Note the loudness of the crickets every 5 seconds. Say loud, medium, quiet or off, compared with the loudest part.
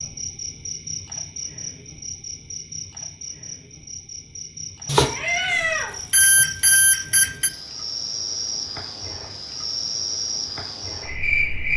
medium, medium, loud.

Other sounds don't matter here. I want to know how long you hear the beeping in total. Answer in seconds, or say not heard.
3 s.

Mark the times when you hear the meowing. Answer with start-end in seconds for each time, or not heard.
5.0-6.0.